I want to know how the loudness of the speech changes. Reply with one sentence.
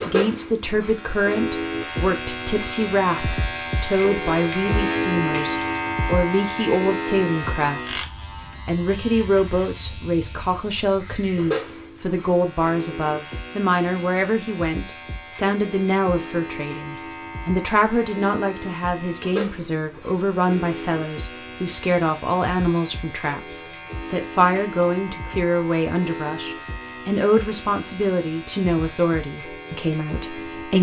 The loudness of the speech stays about the same.